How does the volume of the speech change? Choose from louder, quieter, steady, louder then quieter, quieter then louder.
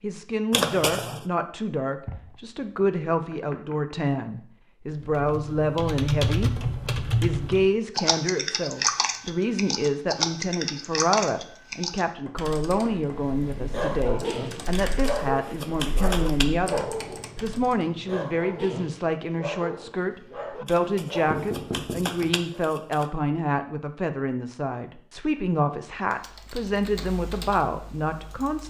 steady.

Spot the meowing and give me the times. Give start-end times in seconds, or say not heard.
not heard.